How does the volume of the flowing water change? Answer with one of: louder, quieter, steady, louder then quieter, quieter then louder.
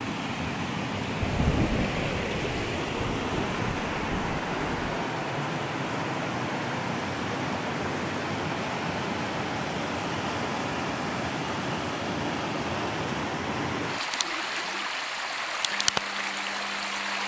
steady.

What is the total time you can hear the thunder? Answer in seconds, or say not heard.
4 s.